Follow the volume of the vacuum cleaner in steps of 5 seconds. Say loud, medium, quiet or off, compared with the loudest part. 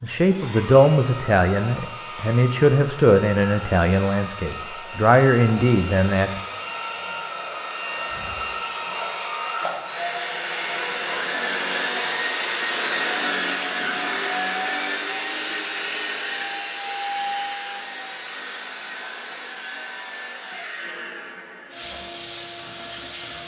medium, medium, loud, medium, medium.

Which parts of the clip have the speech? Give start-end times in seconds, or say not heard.
0.0-6.4.